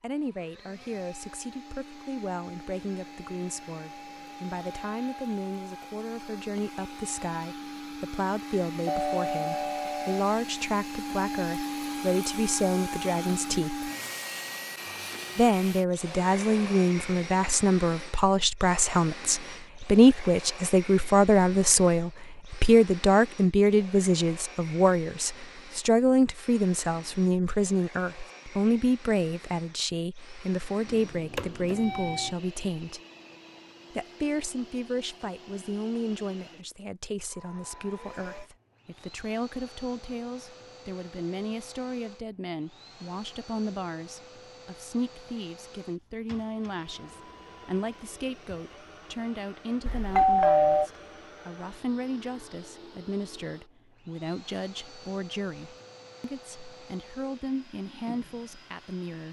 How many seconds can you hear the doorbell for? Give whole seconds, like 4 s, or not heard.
4 s.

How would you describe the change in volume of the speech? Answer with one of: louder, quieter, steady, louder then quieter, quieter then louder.
louder then quieter.